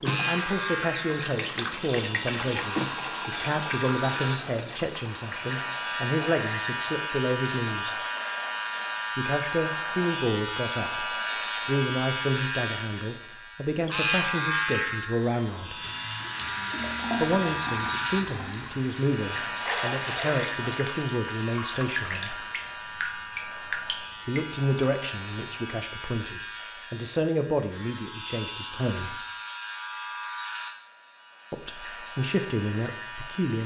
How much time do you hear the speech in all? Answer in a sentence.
You can hear the speech for 27 seconds altogether.